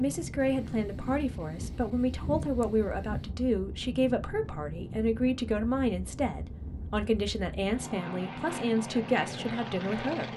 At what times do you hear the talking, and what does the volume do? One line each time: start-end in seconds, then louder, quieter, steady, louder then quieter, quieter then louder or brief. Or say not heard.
0.0-10.3 steady.